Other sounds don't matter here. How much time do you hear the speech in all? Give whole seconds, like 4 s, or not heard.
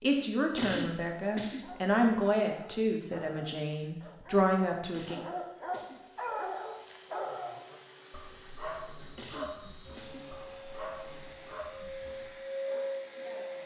5 s.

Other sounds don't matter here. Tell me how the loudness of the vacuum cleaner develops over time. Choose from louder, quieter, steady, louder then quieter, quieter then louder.
louder.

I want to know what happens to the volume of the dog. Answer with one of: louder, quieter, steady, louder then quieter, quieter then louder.
louder then quieter.